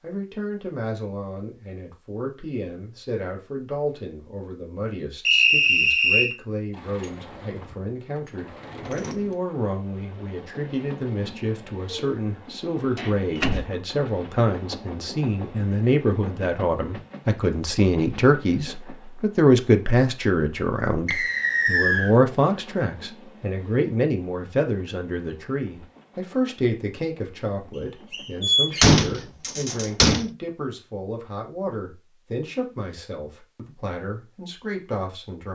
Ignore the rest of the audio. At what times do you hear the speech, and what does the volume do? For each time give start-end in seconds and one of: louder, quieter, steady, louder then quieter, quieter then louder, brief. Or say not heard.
0.0-35.5 louder then quieter.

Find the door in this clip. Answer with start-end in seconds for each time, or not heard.
6.8-9.4, 12.9-13.7, 28.4-30.2.